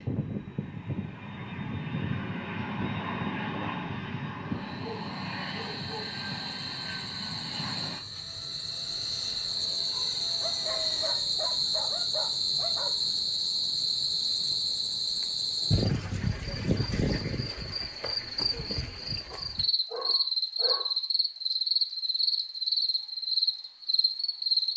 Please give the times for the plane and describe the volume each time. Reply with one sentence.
The plane can be heard from 0.0 to 11.3 s, getting quieter.